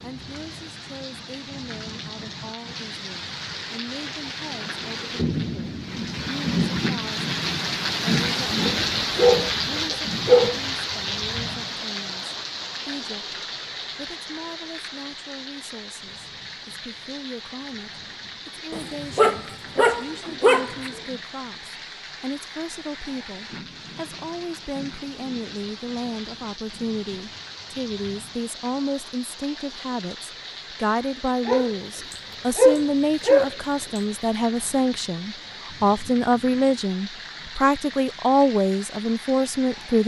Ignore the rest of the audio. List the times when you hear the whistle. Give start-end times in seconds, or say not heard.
not heard.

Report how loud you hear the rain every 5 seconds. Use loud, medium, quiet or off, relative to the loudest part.
medium, loud, medium, quiet, quiet, quiet, quiet, quiet.